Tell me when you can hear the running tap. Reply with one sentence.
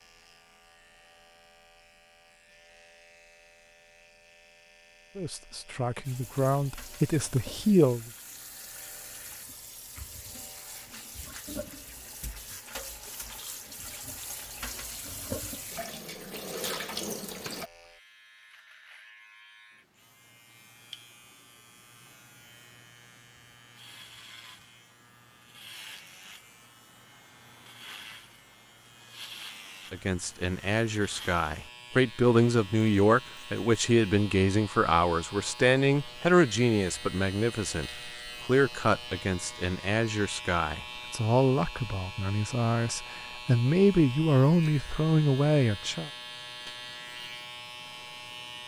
The running tap can be heard from 6.0 to 17.7 s.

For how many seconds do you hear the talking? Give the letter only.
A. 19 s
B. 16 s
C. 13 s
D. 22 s
A.